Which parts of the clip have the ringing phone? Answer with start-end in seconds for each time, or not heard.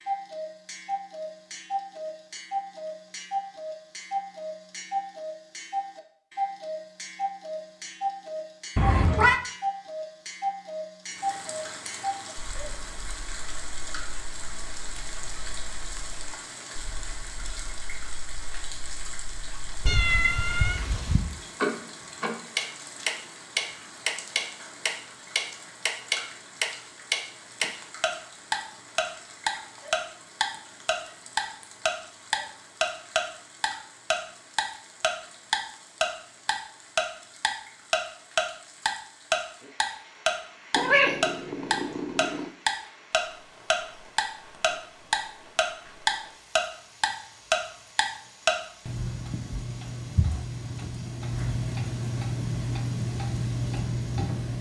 not heard.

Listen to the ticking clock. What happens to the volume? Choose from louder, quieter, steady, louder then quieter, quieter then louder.
louder then quieter.